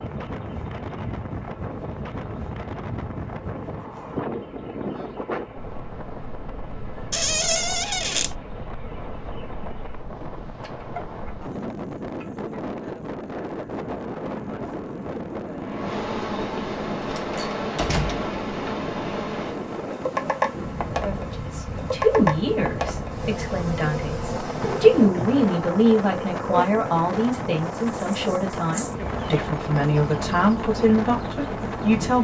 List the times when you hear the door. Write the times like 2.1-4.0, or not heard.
7.1-8.3, 17.0-18.2, 24.6-25.6.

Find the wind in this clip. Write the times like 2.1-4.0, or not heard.
0.0-32.1.